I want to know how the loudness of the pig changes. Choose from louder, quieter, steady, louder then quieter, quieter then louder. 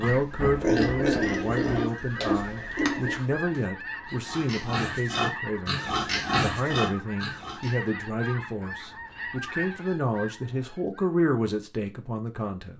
quieter then louder.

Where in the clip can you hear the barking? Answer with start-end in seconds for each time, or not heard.
not heard.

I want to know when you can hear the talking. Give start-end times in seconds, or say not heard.
0.0-12.7.